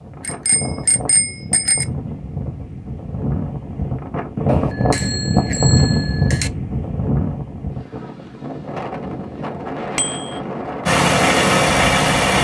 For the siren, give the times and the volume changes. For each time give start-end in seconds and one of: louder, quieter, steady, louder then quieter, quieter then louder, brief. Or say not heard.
not heard.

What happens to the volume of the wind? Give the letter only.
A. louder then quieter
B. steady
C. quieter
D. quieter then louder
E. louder
A.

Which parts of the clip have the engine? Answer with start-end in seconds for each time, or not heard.
10.8-12.3.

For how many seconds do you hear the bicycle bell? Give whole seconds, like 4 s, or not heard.
4 s.